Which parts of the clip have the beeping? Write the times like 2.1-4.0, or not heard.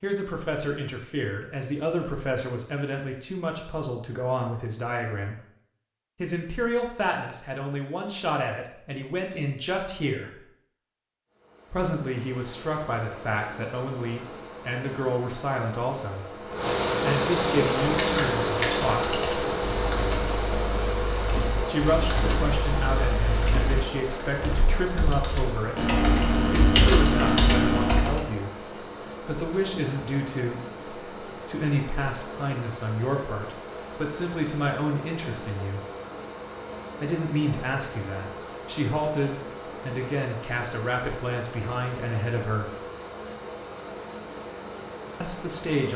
not heard.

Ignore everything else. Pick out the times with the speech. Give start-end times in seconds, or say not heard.
0.0-5.3, 6.2-10.3, 11.7-19.4, 21.6-35.9, 37.0-42.8, 45.2-45.9.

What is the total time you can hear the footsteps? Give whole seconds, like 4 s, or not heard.
not heard.